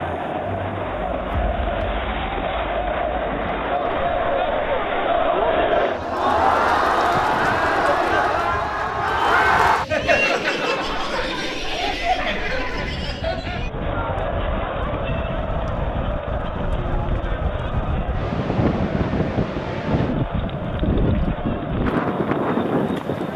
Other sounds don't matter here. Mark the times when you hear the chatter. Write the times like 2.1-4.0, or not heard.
0.0-23.3.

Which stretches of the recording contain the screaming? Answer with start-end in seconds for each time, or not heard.
not heard.